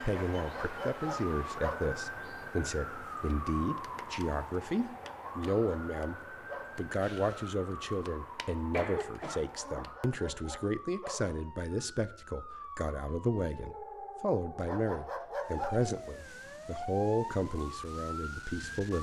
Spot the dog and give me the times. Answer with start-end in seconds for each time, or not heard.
0.1-1.9, 5.0-6.8, 9.6-11.3, 14.7-15.8.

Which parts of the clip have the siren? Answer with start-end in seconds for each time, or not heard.
0.0-18.9.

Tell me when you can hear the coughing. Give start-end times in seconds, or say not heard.
8.6-9.8.